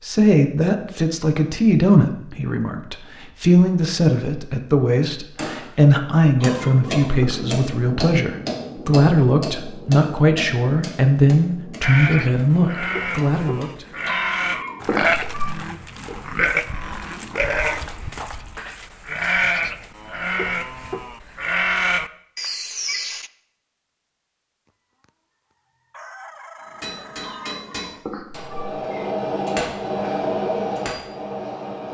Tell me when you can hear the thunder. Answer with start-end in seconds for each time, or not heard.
not heard.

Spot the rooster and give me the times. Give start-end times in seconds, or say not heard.
24.6-25.1, 25.9-27.6.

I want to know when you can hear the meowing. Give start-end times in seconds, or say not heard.
6.4-7.4, 14.1-15.5, 27.2-28.9.